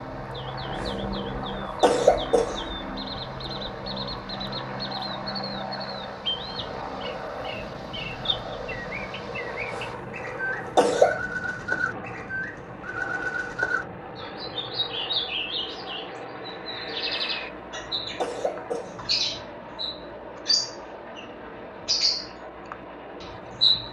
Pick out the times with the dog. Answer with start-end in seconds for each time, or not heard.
not heard.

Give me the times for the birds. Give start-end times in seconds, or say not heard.
0.0-23.8.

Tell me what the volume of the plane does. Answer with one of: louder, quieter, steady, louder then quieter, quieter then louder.
quieter.